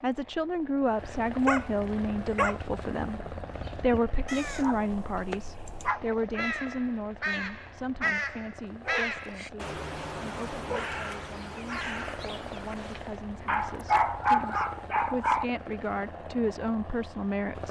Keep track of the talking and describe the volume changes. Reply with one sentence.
The loudness of the talking goes down, then up.